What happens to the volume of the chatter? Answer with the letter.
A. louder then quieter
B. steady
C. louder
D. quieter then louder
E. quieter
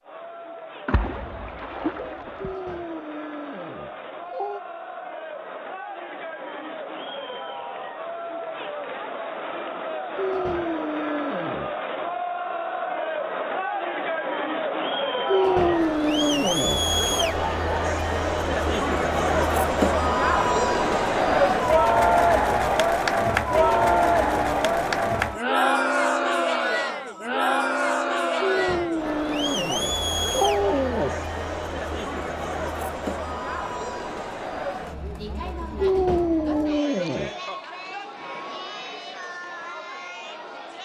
A.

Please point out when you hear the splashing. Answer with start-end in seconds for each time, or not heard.
0.8-2.5.